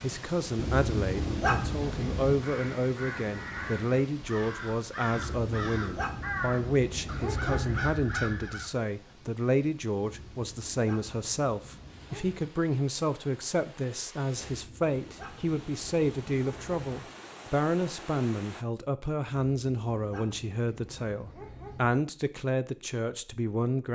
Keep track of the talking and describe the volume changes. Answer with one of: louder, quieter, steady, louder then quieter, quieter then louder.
steady.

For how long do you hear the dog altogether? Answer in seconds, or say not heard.
12 s.